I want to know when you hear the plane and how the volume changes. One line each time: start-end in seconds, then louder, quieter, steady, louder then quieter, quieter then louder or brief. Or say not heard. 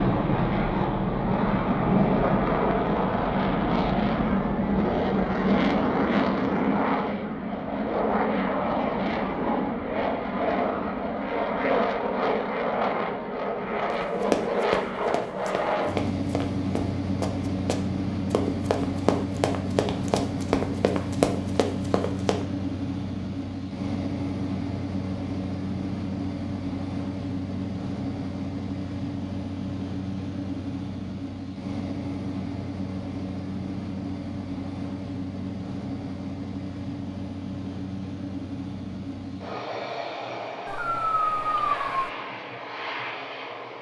0.0-43.7 quieter.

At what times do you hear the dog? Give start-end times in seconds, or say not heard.
40.6-42.1.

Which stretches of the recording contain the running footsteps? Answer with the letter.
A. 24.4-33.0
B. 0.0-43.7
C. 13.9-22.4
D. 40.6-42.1
C.